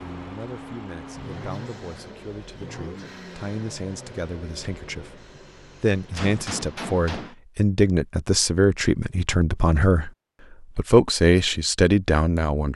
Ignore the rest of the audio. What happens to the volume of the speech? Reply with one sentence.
The volume of the speech goes up.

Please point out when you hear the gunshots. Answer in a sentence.
The gunshots can be heard from 6.1 to 7.3 s.